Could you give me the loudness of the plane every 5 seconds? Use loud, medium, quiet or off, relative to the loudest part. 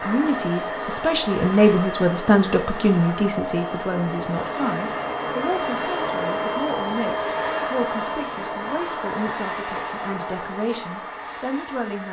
loud, loud, medium.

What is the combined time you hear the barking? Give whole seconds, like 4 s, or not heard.
not heard.